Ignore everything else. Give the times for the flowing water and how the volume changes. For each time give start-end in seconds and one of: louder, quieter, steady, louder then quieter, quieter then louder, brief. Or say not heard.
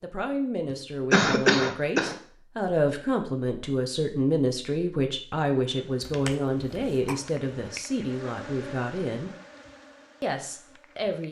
not heard.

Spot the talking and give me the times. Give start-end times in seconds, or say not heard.
0.0-9.3, 10.2-11.2.